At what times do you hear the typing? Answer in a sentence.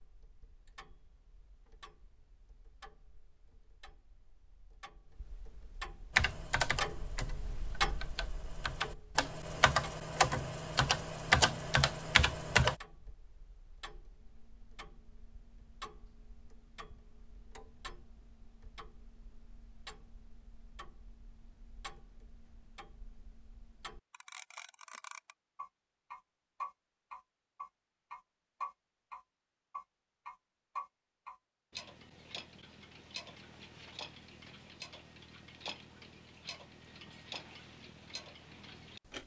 The typing can be heard from 6.2 to 12.8 s.